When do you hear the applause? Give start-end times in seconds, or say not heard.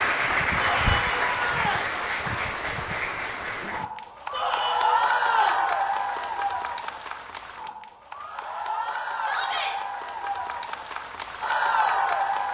0.0-12.4.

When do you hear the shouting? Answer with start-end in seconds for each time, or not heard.
0.6-1.9, 4.3-5.7, 9.2-9.8.